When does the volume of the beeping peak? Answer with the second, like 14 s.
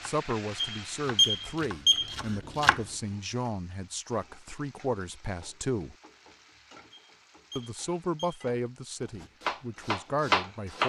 1 s.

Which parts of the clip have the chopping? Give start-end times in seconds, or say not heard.
0.0-2.9, 9.2-10.8.